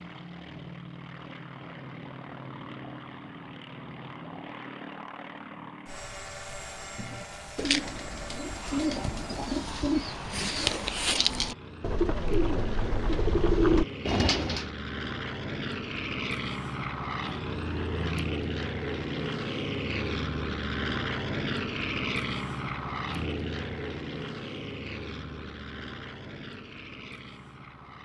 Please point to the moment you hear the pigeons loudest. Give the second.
14 s.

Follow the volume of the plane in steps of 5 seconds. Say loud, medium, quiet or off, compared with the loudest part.
medium, medium, medium, loud, loud, medium.